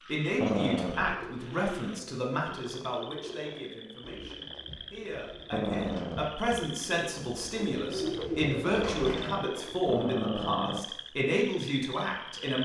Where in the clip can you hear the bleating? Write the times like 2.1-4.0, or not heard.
not heard.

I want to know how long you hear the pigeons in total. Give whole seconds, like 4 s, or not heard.
9 s.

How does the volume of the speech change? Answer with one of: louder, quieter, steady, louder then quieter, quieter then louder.
quieter then louder.